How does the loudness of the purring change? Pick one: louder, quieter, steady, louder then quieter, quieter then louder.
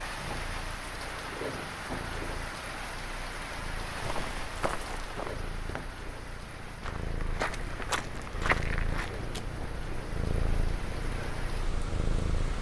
louder.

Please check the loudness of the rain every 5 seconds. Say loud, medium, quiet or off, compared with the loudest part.
loud, medium, medium.